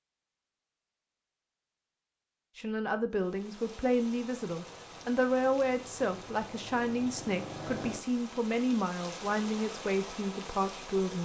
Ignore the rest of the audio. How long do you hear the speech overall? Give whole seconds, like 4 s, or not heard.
9 s.